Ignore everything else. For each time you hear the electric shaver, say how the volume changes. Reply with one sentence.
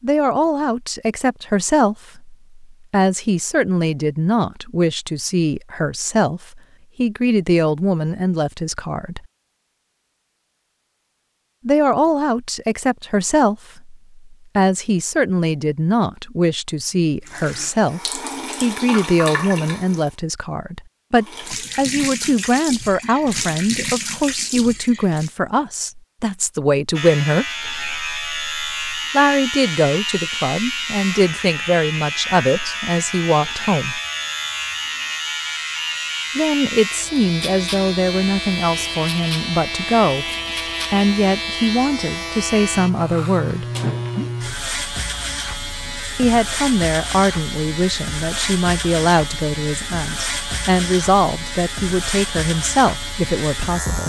The electric shaver can be heard from 26.9 to 54.0 s, at a steady volume.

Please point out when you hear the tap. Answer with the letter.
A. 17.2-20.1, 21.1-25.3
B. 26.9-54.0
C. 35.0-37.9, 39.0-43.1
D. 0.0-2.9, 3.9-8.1
A.